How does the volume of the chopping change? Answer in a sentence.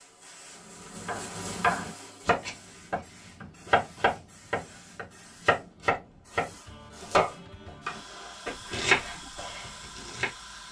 The loudness of the chopping stays about the same.